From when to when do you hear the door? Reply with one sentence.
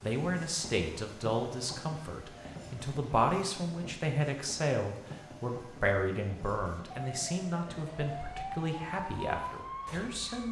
You can't hear the door here.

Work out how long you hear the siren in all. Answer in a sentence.
You can hear the siren for 3 seconds altogether.